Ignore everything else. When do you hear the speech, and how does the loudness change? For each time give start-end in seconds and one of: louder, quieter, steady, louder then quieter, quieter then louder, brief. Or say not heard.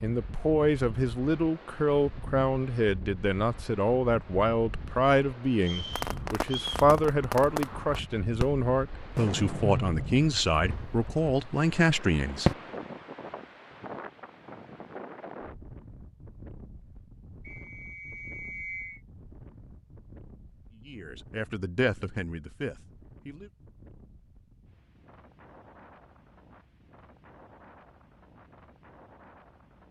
0.0-12.5 steady
20.8-23.5 brief.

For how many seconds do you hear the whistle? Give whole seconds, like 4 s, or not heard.
3 s.